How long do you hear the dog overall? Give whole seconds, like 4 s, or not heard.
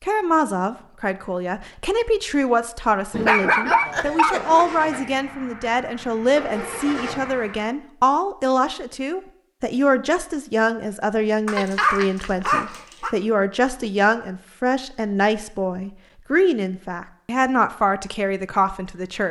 3 s.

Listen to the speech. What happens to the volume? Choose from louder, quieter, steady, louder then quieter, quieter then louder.
steady.